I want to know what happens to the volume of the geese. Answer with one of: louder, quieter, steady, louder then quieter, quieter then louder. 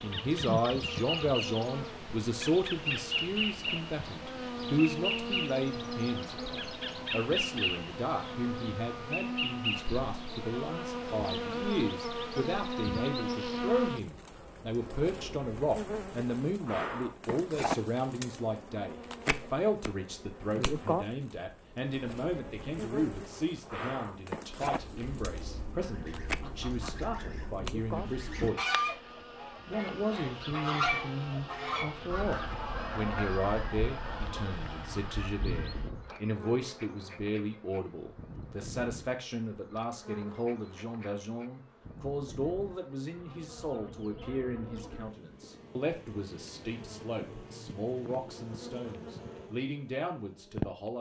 louder then quieter.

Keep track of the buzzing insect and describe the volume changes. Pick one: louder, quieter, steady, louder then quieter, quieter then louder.
quieter.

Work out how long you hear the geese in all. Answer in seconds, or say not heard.
11 s.